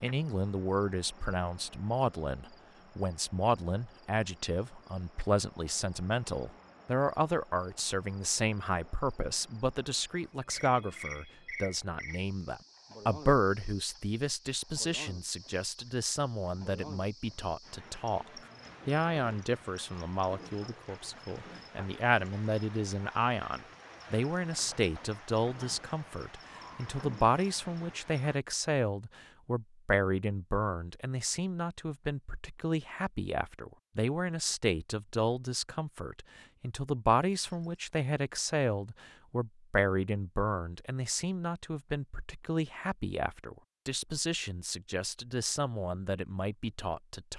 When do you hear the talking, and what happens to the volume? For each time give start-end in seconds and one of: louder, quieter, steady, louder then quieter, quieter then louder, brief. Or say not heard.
0.0-47.3 steady.